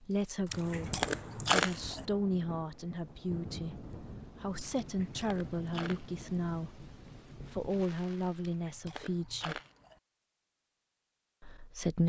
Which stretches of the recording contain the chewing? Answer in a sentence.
You can hear the chewing from 0.5 to 2.0 s, from 4.8 to 6.2 s and from 8.4 to 9.9 s.